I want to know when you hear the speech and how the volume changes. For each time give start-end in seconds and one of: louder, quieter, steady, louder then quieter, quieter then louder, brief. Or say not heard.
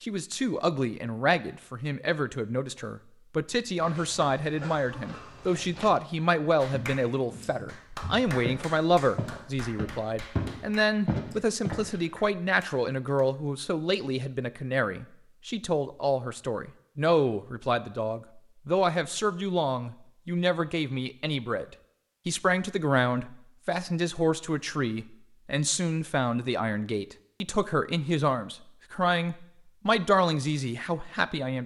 0.0-31.6 steady.